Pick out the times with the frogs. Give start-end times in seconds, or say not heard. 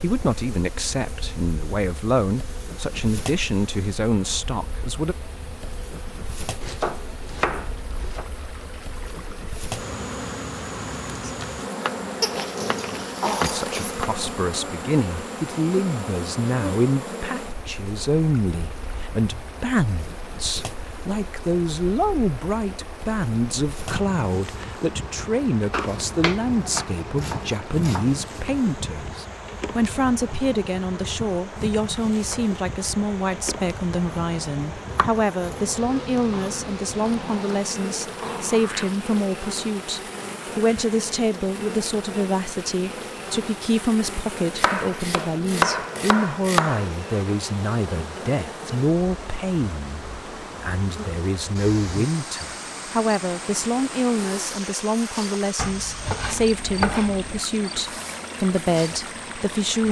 not heard.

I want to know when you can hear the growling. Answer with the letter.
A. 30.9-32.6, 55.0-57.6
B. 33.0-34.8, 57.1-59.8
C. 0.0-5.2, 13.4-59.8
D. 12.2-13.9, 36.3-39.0
D.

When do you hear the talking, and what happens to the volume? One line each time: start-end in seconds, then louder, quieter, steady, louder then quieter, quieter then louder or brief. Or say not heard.
0.0-5.2 steady
13.4-59.8 steady.